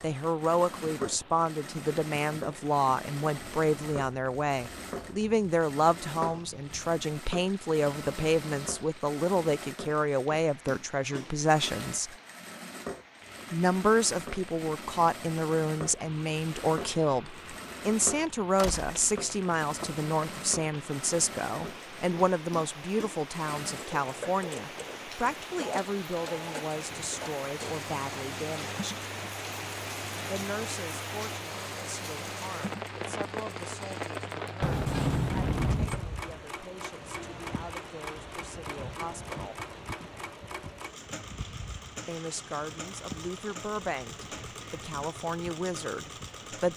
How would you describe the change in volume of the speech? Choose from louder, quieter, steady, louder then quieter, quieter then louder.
quieter.